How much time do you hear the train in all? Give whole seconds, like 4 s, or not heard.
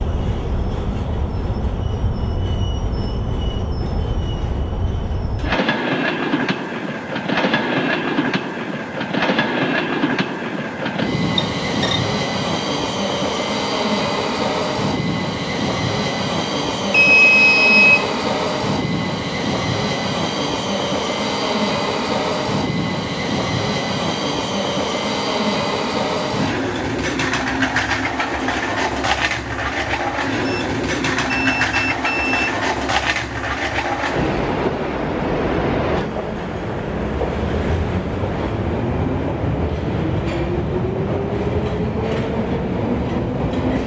44 s.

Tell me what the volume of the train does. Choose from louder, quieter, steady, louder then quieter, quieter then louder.
steady.